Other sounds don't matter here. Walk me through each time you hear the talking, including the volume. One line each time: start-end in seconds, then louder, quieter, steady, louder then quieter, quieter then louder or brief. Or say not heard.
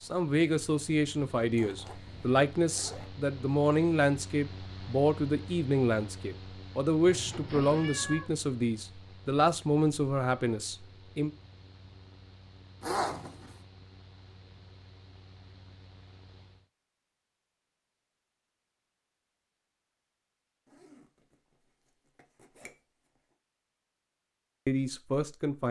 0.0-11.3 steady
24.6-25.6 brief.